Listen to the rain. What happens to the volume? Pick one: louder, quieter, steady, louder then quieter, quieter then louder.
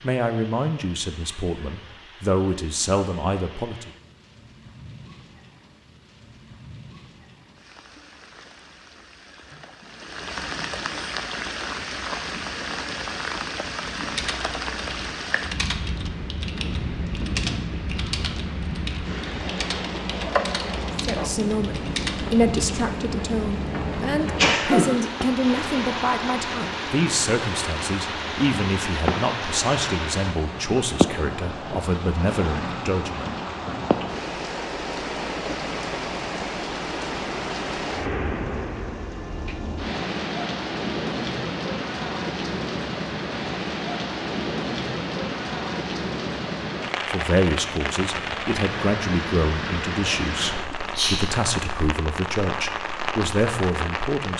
louder.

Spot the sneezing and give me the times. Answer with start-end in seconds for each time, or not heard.
24.4-24.9, 50.7-51.6.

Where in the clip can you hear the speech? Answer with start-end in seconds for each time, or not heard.
0.0-3.9, 21.0-33.4, 47.1-54.3.